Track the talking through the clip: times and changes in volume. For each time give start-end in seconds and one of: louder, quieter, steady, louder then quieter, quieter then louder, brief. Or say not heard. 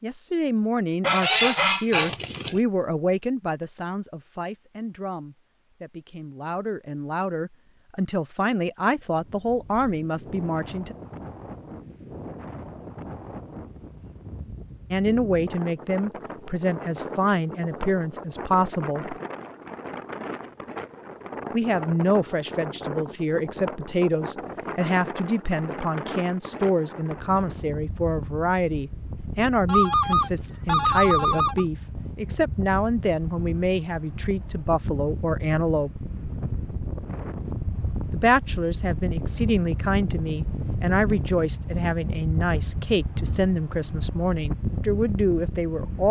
0.0-10.9 quieter then louder
14.9-19.1 steady
21.5-36.0 steady
38.1-46.0 steady.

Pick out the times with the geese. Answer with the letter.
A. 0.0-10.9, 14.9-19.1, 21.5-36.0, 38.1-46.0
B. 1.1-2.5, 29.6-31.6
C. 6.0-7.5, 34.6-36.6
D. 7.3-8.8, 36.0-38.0
B.